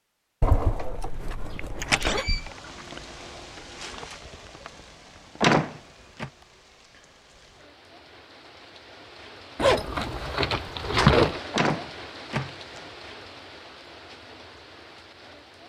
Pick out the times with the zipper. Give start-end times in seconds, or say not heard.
0.4-2.2, 9.6-11.4.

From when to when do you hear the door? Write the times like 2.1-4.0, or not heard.
1.8-2.5, 5.4-6.3, 11.5-12.8.